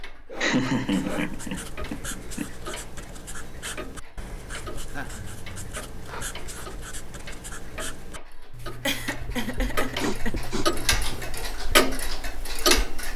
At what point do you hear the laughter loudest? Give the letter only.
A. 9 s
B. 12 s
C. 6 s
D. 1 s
D.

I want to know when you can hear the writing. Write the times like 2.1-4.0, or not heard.
0.8-11.5.